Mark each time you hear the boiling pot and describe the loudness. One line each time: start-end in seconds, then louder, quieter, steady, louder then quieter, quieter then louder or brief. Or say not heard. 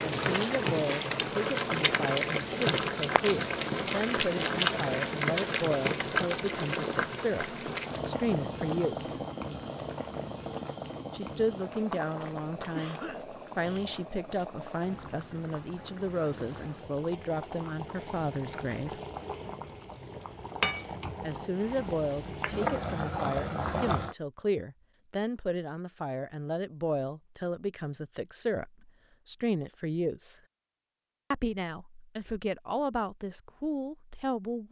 0.0-24.1 quieter then louder.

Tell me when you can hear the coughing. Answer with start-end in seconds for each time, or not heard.
12.7-14.1.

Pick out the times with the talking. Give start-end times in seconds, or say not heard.
0.1-9.2, 11.1-19.0, 21.2-30.4, 31.3-34.6.